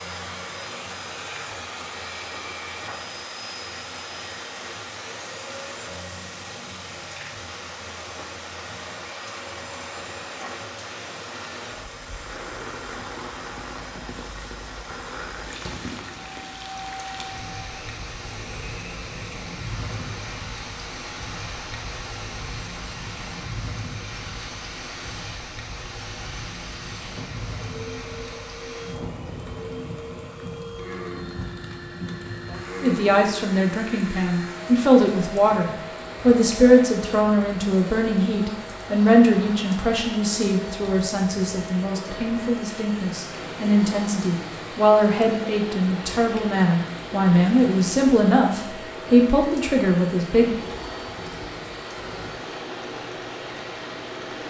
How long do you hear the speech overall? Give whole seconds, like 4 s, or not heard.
18 s.